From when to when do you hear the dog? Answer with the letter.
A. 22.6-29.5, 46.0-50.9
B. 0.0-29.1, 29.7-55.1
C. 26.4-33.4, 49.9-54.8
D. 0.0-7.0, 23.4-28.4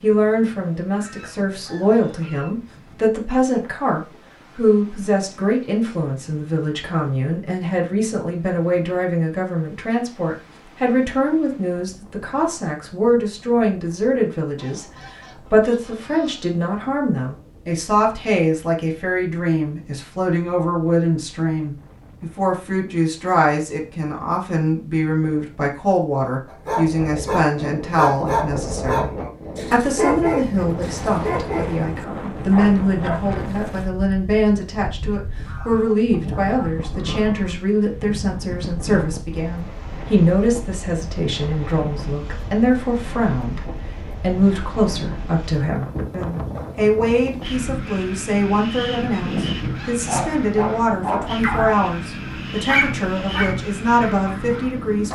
C.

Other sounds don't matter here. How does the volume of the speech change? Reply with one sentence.
The volume of the speech stays about the same.